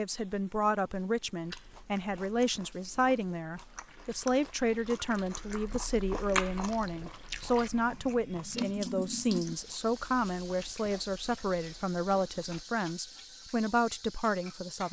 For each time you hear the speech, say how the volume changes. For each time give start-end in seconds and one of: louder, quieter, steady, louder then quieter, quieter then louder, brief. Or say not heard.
0.0-14.8 steady.